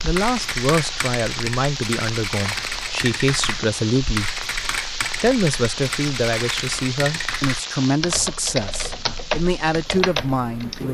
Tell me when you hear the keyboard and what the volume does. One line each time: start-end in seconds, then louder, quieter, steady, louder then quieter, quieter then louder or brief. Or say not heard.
0.0-10.8 steady.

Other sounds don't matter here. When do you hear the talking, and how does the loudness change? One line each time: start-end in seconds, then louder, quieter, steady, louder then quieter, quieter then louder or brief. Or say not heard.
0.0-10.8 steady.